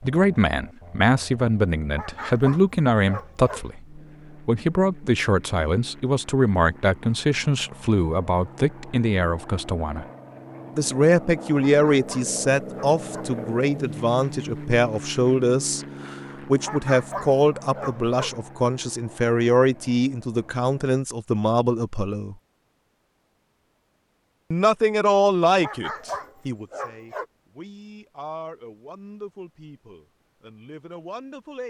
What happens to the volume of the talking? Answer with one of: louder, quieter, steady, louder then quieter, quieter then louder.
quieter.